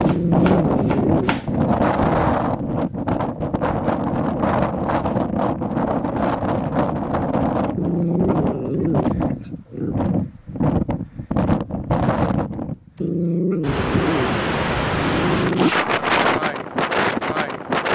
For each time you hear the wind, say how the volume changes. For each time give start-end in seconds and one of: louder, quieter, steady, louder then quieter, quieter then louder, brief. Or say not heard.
0.0-17.9 steady.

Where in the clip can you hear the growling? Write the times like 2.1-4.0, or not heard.
0.0-2.2, 7.8-9.9, 13.0-15.7.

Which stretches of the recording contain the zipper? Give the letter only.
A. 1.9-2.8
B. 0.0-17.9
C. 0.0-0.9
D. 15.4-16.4
D.